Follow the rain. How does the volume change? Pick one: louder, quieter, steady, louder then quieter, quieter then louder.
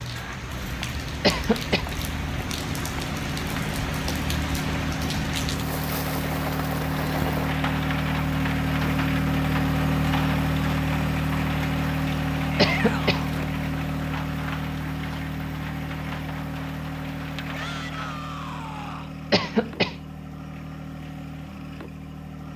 quieter.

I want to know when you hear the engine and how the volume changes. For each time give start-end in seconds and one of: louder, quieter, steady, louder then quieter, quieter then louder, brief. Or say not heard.
0.1-22.5 louder then quieter.